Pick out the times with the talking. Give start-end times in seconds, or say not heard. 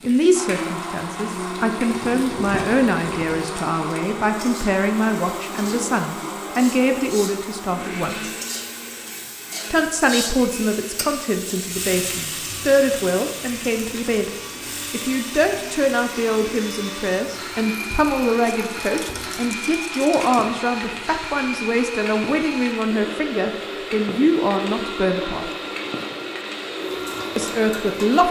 0.0-8.3, 9.7-14.3, 14.9-25.4, 27.4-28.2.